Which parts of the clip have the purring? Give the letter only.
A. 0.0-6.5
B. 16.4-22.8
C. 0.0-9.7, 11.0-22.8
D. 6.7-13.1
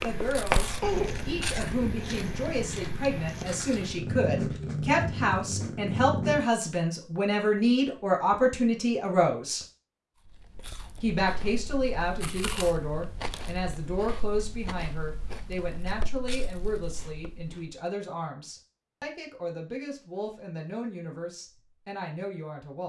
A.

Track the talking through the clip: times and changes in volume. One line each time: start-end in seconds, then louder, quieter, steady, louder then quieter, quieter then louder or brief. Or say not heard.
0.0-9.7 louder
11.0-22.8 quieter.